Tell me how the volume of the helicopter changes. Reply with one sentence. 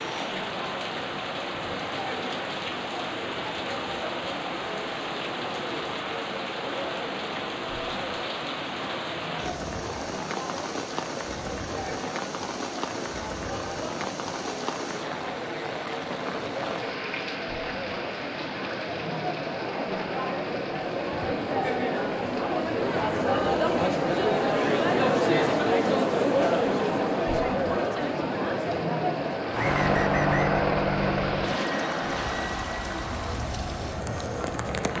The loudness of the helicopter goes down.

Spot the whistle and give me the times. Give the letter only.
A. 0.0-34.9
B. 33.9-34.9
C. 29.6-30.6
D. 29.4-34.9
C.